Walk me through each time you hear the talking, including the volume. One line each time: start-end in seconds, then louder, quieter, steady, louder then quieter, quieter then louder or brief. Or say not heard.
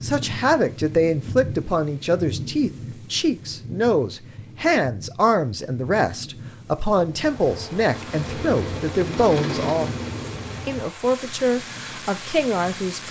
0.0-9.9 steady
10.7-13.0 brief.